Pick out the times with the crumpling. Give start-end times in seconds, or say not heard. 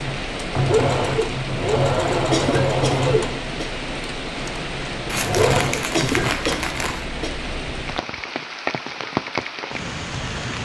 5.0-7.0.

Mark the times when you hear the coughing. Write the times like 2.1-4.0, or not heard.
2.3-3.7, 5.9-7.3.